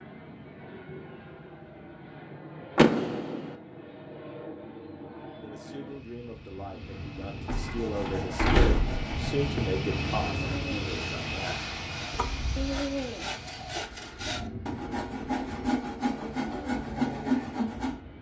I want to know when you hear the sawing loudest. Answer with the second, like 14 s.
17 s.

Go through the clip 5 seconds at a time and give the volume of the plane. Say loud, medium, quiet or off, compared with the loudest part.
medium, loud, loud, medium.